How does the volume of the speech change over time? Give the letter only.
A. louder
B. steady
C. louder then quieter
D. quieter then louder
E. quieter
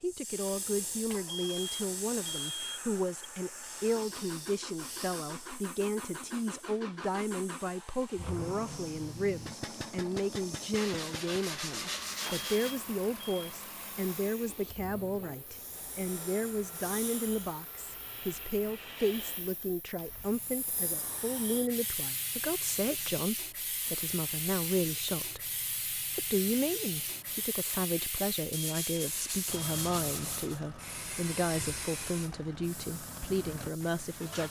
B.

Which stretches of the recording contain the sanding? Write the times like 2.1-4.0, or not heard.
10.7-12.8, 28.5-30.6.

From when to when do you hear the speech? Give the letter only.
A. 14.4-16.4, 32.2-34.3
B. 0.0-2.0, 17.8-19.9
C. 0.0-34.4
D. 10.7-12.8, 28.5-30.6
C.